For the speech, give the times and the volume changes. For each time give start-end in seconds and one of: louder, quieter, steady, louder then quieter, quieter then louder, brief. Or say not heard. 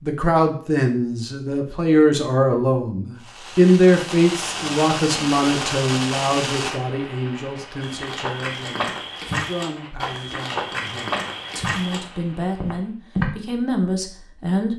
0.0-14.7 quieter then louder.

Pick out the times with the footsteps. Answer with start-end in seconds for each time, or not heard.
7.8-13.3.